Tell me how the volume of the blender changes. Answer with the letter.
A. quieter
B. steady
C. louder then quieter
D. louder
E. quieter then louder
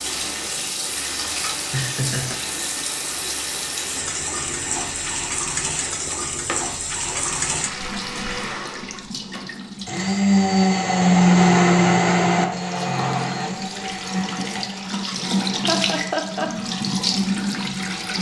C.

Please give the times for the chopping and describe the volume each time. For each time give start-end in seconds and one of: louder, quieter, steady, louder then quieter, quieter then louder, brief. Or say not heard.
not heard.